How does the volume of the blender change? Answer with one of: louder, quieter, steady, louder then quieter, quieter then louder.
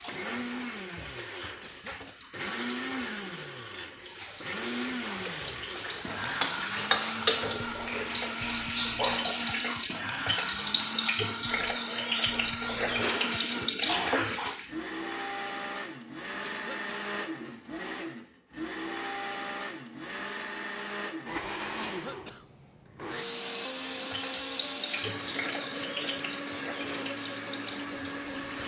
steady.